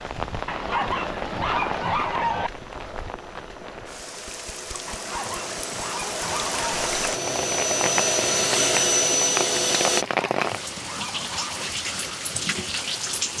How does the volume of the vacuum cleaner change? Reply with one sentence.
The volume of the vacuum cleaner goes up.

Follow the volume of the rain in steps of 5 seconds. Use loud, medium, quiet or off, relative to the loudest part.
medium, loud, loud.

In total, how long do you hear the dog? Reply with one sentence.
The dog can be heard for 6 seconds in total.